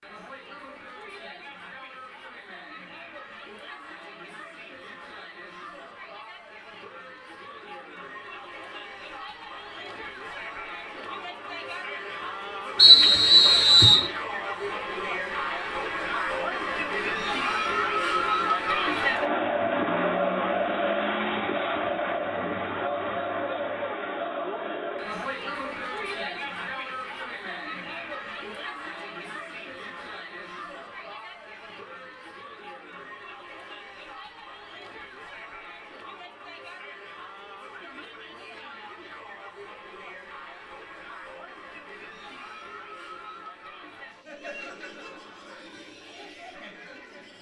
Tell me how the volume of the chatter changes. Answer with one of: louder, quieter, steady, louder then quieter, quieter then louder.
louder then quieter.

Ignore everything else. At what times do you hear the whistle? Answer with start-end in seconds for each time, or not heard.
12.8-14.1.